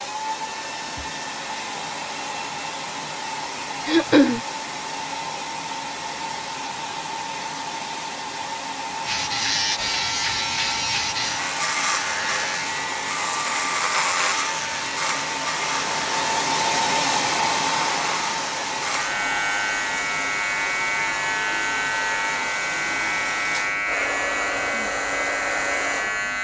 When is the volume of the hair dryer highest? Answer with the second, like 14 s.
17 s.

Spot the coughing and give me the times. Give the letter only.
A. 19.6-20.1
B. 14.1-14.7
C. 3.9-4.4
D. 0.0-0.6
C.